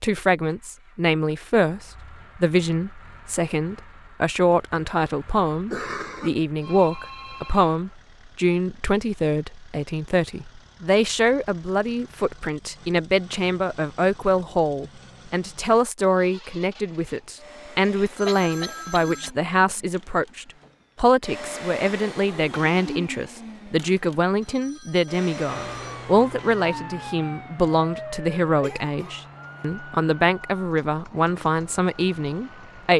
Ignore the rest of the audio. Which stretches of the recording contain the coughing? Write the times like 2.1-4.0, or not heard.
5.7-6.3, 17.9-19.6, 28.6-29.1.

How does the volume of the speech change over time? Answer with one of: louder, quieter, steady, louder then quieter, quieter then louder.
steady.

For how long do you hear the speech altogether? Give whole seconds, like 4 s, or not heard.
33 s.